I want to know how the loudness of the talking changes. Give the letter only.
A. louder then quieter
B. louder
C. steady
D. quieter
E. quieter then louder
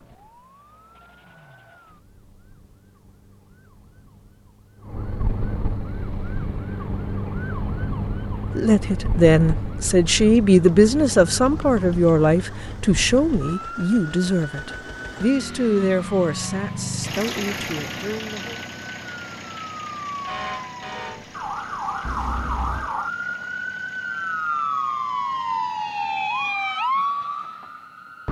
D.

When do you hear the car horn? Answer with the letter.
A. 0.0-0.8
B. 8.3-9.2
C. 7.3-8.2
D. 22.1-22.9
D.